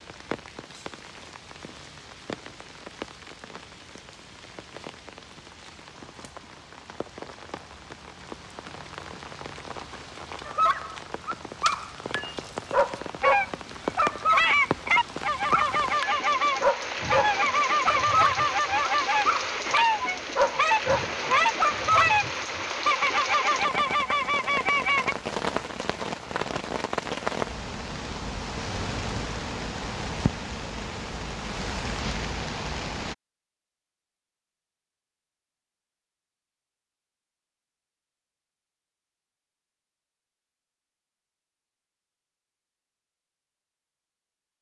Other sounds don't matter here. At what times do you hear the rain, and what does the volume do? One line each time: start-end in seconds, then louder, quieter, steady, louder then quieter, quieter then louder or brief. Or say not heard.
0.0-33.1 louder.